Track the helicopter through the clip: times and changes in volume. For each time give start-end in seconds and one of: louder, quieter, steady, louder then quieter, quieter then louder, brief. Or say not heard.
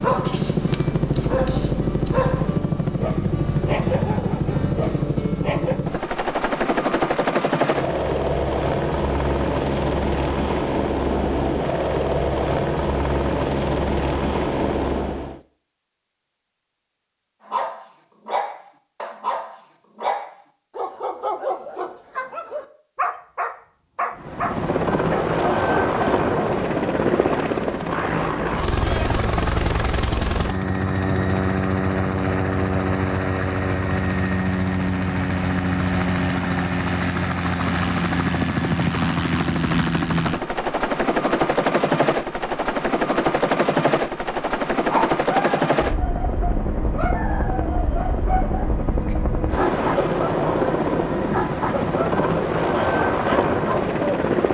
0.0-15.4 steady
24.1-54.4 steady.